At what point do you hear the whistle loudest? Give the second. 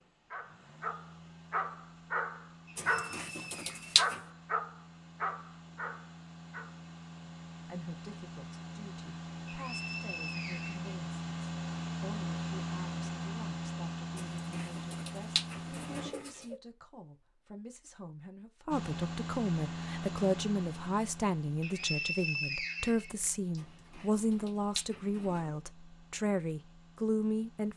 22 s.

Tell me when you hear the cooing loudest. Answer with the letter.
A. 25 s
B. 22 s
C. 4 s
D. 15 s
C.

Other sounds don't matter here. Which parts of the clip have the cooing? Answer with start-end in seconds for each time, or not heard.
2.8-4.2, 14.2-16.6, 23.6-25.6.